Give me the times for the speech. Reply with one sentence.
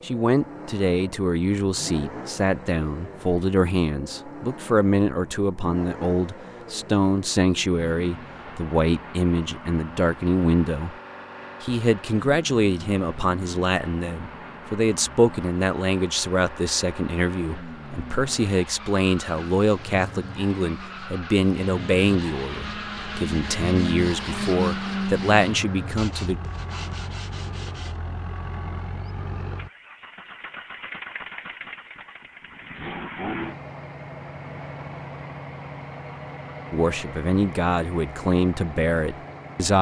The speech can be heard from 0.0 to 10.9 s, from 11.6 to 26.4 s and from 36.7 to 39.7 s.